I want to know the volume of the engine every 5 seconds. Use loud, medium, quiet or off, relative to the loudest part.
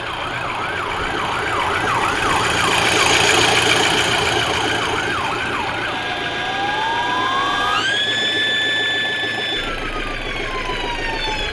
loud, medium, medium.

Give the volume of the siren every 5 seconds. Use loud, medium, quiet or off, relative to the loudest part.
loud, loud, medium.